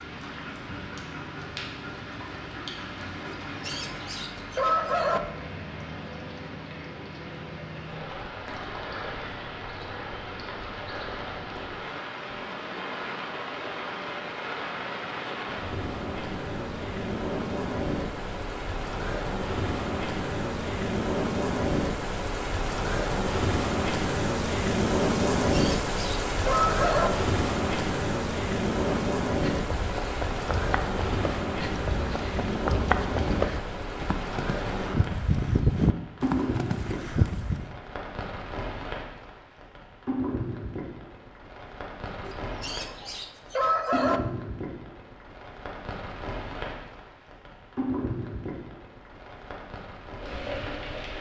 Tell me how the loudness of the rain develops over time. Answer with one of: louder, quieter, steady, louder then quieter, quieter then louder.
louder then quieter.